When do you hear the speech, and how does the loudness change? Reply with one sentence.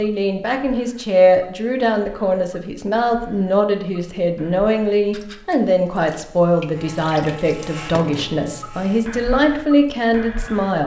The speech can be heard from 0.0 to 10.8 s, at a steady volume.